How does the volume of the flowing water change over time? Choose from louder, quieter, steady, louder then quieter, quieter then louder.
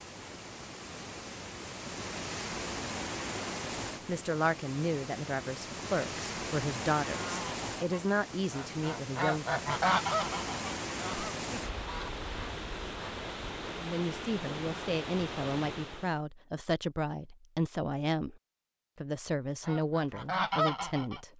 steady.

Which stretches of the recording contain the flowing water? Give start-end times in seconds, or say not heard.
0.0-16.2.